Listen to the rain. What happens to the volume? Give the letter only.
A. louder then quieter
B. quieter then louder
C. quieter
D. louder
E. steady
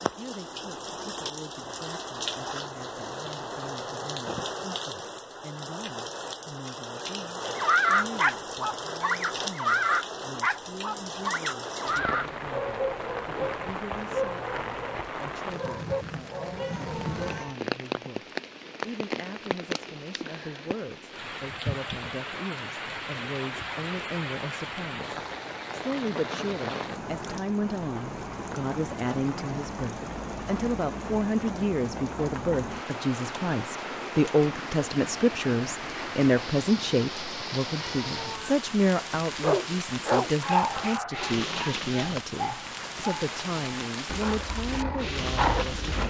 E.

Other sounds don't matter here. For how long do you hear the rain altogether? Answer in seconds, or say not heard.
46 s.